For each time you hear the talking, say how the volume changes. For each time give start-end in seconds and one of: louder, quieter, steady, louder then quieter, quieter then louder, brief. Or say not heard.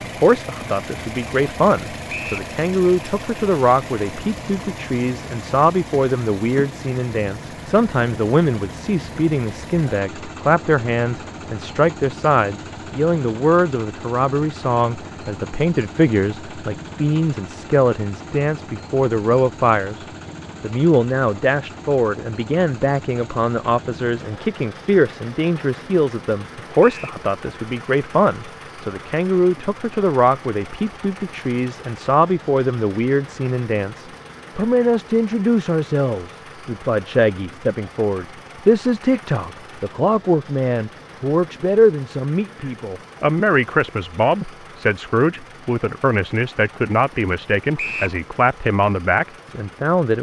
0.0-50.1 steady.